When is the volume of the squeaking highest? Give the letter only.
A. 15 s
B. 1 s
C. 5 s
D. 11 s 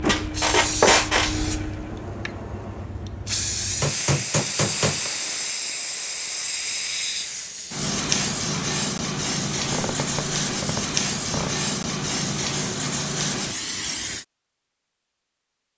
B.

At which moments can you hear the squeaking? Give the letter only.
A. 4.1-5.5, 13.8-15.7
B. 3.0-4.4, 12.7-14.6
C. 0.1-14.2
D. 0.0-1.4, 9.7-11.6
D.